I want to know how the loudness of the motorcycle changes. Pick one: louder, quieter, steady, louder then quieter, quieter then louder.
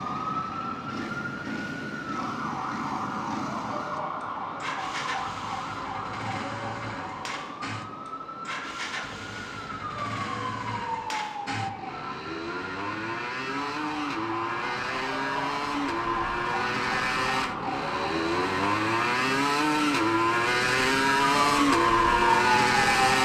louder.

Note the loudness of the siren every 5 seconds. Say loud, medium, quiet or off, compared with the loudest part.
medium, medium, medium, medium, loud.